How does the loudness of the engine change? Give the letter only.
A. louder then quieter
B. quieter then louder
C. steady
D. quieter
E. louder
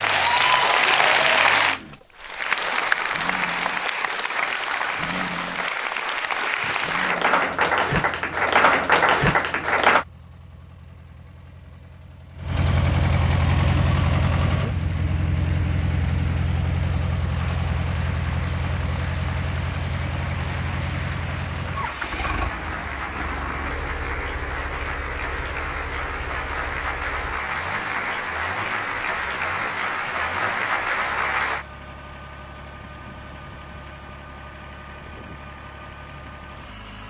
A.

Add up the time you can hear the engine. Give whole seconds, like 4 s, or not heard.
37 s.